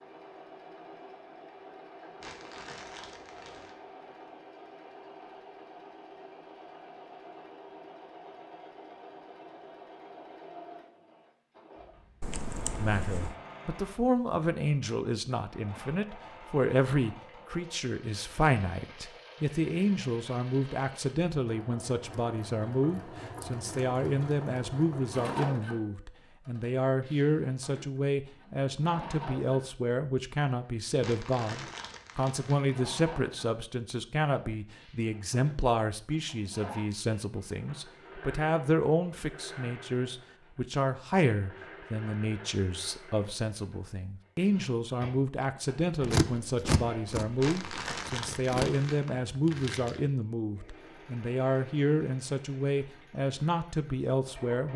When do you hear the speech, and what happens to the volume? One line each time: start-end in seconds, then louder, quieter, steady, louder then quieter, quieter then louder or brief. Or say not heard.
12.8-54.7 steady.